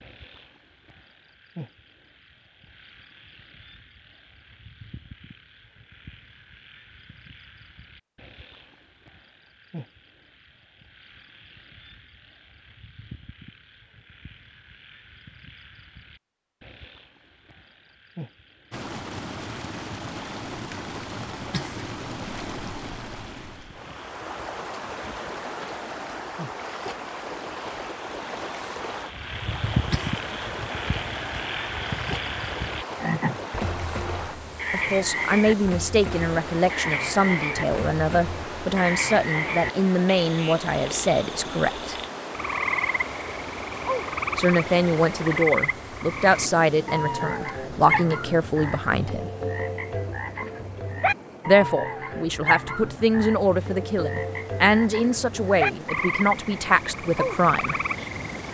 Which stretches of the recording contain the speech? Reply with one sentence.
You can hear the speech from 34.7 to 42.0 s, from 44.4 to 49.3 s and from 51.5 to 57.8 s.